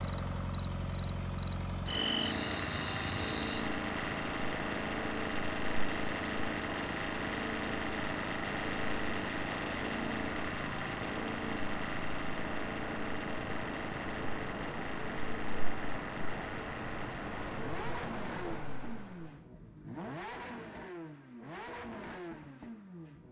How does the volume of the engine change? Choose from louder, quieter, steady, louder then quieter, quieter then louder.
quieter.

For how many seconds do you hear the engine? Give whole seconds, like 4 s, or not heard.
23 s.